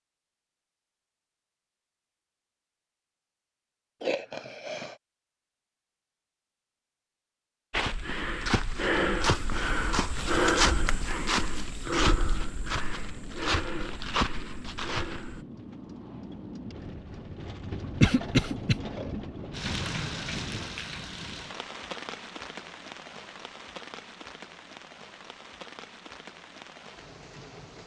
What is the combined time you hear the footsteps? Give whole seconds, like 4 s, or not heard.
8 s.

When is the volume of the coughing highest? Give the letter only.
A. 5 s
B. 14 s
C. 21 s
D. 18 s
D.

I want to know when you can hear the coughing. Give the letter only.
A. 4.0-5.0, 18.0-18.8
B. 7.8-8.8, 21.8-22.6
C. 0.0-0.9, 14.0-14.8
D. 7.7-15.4
A.